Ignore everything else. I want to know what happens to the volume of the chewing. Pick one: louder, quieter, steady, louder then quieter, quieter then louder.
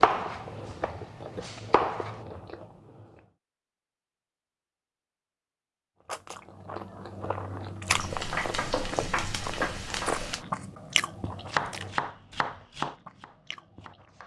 louder then quieter.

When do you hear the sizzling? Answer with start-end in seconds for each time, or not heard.
7.8-10.4.